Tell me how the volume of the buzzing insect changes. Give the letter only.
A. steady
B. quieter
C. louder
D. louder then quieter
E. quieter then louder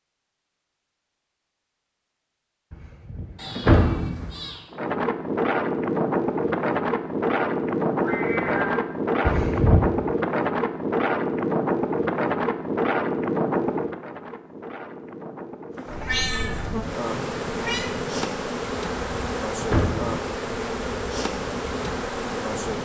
A.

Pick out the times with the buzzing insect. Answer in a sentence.
You can hear the buzzing insect from 15.8 to 22.8 s.